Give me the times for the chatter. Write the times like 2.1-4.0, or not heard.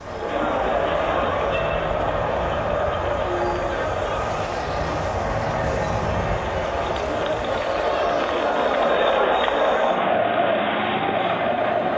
0.0-11.9.